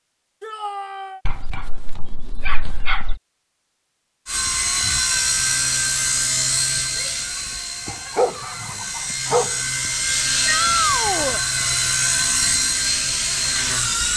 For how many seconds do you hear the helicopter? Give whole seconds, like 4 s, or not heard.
10 s.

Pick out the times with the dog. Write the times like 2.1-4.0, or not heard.
1.2-3.2, 7.8-9.6.